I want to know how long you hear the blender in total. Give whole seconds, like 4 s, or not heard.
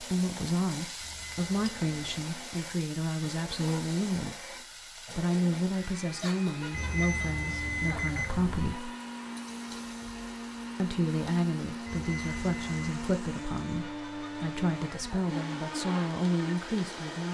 17 s.